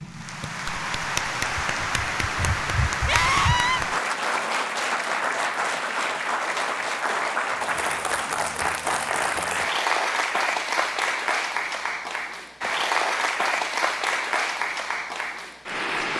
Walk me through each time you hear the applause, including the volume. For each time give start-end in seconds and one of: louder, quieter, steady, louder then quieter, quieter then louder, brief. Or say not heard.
0.0-16.1 steady.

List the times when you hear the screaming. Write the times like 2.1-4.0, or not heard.
3.0-3.8.